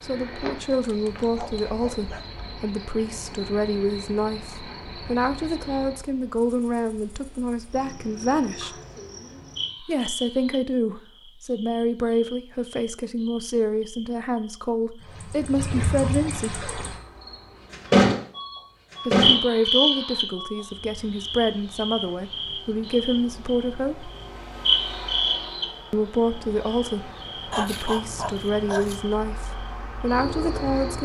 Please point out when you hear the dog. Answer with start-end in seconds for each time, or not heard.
0.8-2.2, 27.5-29.1.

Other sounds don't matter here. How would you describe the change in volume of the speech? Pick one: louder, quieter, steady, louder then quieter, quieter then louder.
steady.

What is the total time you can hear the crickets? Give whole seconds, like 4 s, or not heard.
31 s.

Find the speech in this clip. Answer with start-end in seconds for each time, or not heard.
0.0-8.7, 9.8-16.6, 19.1-24.1, 25.9-31.0.